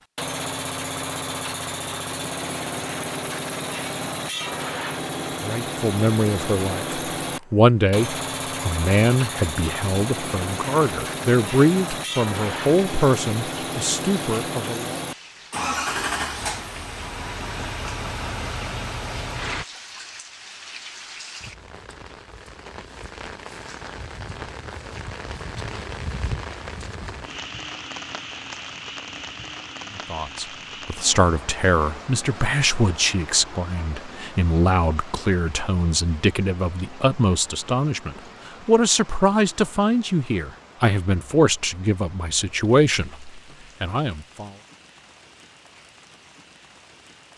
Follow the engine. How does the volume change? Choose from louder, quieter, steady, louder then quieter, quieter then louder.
steady.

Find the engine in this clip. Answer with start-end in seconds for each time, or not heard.
0.1-19.6.